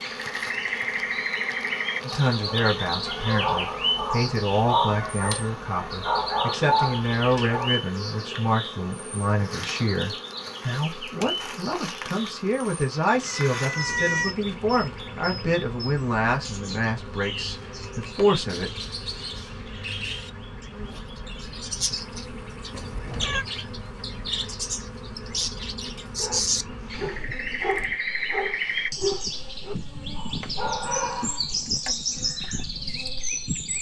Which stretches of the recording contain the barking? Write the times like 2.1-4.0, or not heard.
2.4-7.8, 26.1-31.4.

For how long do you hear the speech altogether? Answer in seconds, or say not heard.
17 s.